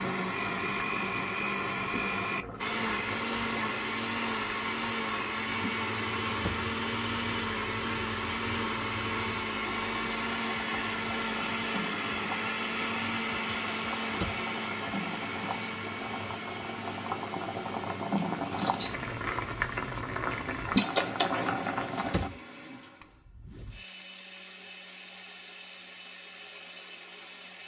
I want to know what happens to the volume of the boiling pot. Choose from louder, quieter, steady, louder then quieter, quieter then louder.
louder.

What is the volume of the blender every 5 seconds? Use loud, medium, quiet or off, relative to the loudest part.
loud, loud, loud, medium, quiet, quiet.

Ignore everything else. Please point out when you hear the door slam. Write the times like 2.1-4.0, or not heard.
6.2-6.7, 14.0-14.4, 21.9-22.4.